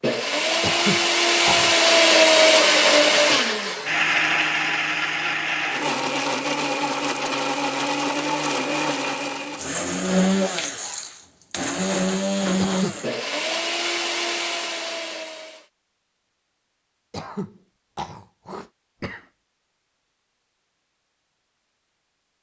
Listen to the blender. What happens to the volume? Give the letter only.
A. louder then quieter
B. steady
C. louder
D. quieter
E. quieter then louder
D.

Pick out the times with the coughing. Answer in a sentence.
You can hear the coughing from 0.6 to 1.8 s, from 12.6 to 13.1 s and from 17.1 to 19.2 s.